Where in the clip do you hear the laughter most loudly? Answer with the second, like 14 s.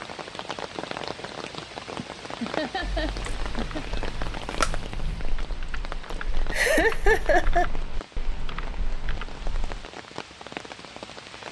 7 s.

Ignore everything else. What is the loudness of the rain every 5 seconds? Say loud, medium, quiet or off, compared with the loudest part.
loud, medium, loud.